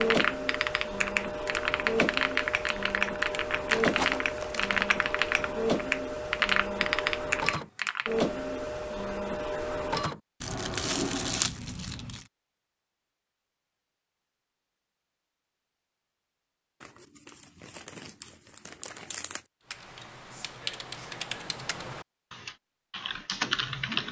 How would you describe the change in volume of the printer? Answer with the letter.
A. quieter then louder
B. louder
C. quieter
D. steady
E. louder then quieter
D.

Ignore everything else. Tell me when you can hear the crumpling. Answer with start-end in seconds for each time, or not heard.
3.7-5.0, 10.4-12.2, 16.8-19.4.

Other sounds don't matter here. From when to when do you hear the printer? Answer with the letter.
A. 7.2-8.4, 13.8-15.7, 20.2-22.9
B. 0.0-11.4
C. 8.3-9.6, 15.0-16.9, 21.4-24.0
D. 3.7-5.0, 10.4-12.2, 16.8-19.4
B.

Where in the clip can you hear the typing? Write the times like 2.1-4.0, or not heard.
0.0-8.2, 19.6-24.0.